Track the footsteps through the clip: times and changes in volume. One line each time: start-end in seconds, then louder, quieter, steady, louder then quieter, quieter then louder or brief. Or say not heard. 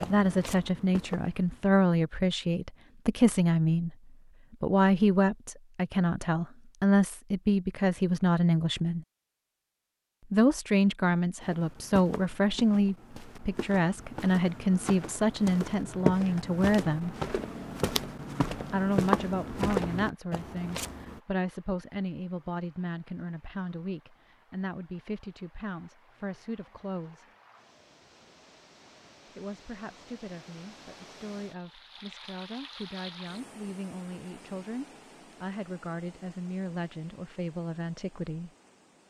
0.0-1.7 brief
11.4-21.2 louder.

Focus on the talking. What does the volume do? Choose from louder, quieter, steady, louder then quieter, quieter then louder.
quieter.